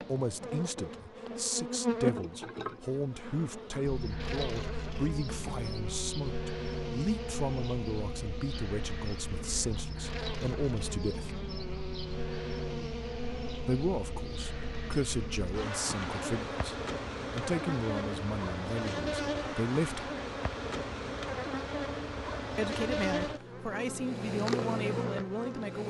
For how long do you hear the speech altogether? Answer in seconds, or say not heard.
21 s.